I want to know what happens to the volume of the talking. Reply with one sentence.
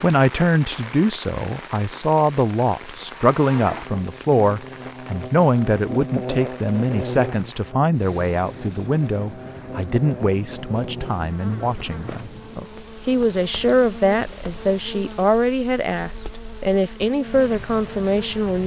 The volume of the talking stays about the same.